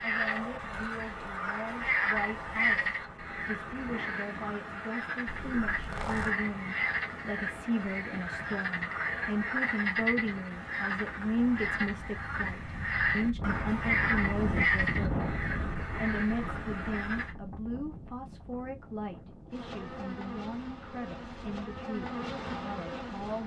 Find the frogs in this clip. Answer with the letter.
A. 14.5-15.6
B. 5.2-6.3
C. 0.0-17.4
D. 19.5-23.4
C.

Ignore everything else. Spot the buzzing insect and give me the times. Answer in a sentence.
The buzzing insect can be heard from 19.5 to 23.4 s.